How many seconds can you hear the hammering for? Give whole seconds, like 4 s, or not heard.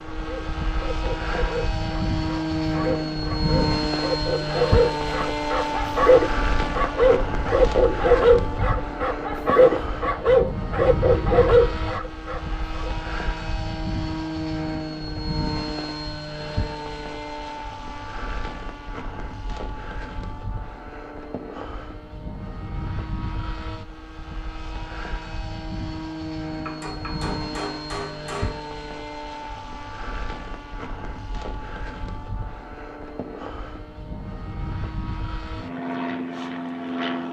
2 s.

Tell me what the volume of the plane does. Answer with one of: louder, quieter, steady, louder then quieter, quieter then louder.
quieter.